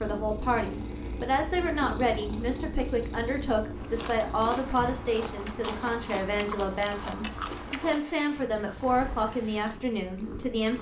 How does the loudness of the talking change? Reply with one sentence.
The volume of the talking stays about the same.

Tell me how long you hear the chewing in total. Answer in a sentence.
You can hear the chewing for 7 seconds altogether.